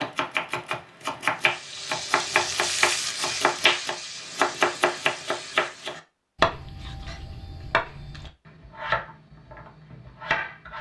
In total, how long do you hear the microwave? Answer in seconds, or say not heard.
not heard.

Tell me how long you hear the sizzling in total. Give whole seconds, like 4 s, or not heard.
5 s.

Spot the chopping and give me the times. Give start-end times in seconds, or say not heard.
0.0-10.7.